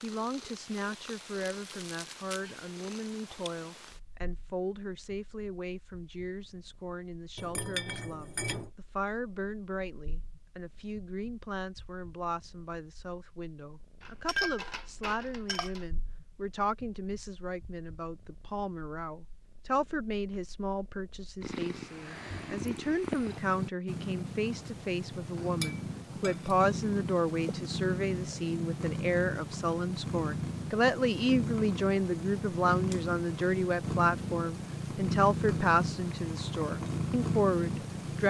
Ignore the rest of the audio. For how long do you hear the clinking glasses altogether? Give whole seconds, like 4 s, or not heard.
4 s.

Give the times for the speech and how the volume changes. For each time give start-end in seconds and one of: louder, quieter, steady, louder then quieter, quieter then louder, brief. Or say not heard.
0.0-38.2 louder.